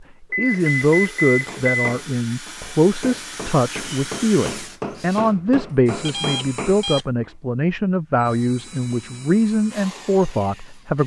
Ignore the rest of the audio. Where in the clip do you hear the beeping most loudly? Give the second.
1 s.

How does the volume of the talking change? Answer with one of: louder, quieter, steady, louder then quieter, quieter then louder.
steady.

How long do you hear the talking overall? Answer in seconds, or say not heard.
11 s.